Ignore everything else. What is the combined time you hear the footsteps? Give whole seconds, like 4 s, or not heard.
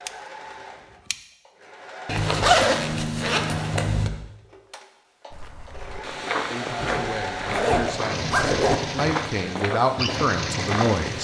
6 s.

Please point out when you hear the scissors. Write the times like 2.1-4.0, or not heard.
0.1-1.1.